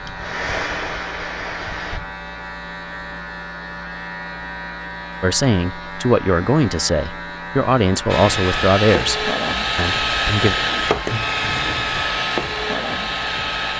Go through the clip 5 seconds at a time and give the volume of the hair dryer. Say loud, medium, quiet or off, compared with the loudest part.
medium, loud, loud.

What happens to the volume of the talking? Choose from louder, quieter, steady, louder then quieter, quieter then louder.
quieter.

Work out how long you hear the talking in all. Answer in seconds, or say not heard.
5 s.